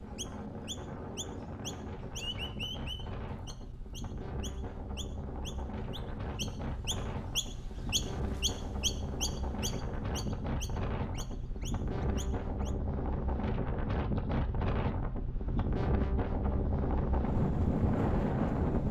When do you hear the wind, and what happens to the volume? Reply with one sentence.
You can hear the wind from 0.0 to 18.8 s, getting louder.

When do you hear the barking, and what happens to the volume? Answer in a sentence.
You can't hear the barking here.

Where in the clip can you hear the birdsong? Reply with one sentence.
You can hear the birdsong from 0.1 to 12.7 s.